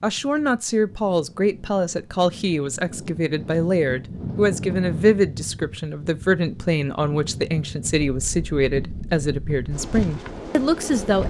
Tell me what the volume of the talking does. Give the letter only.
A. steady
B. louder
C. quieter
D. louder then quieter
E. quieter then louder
A.